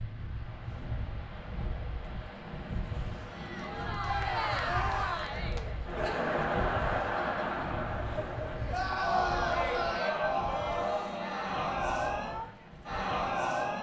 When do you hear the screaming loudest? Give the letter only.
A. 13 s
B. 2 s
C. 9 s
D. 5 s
C.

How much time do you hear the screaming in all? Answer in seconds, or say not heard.
3 s.